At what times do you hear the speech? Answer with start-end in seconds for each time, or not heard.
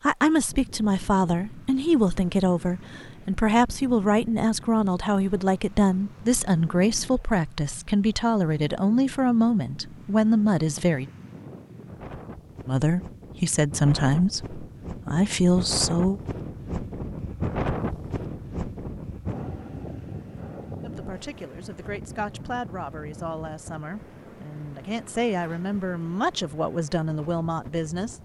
0.0-11.1, 12.7-16.2, 20.8-28.2.